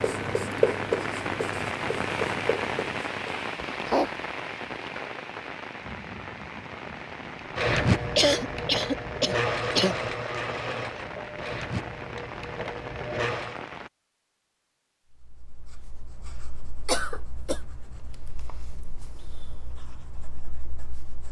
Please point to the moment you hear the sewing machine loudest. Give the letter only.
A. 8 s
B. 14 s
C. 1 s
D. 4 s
A.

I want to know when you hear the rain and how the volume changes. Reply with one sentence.
The rain can be heard from 0.0 to 13.9 s, getting quieter.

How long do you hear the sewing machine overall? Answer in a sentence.
The sewing machine can be heard for 6 seconds in total.